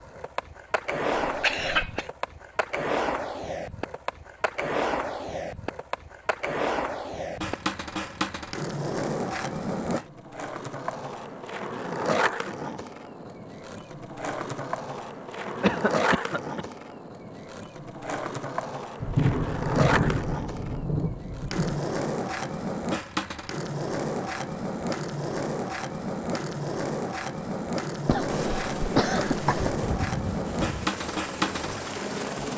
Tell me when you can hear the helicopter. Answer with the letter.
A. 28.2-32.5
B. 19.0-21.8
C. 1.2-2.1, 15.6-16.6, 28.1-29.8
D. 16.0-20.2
A.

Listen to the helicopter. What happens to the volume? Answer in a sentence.
The loudness of the helicopter stays about the same.